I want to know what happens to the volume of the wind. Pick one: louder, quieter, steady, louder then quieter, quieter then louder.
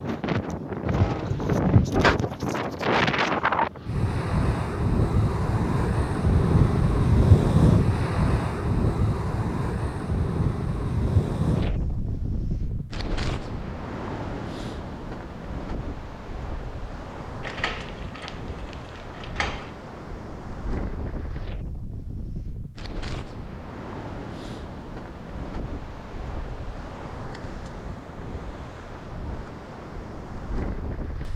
quieter.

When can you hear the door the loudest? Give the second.
2 s.